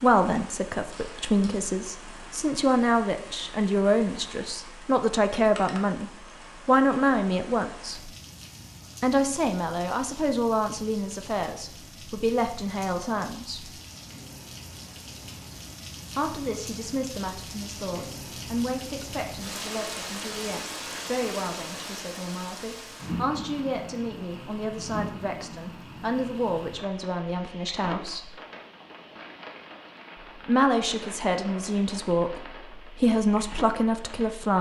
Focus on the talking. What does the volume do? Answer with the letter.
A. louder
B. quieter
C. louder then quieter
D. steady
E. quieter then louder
E.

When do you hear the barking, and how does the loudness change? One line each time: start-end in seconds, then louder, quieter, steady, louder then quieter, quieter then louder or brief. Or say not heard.
not heard.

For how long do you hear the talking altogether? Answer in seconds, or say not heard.
29 s.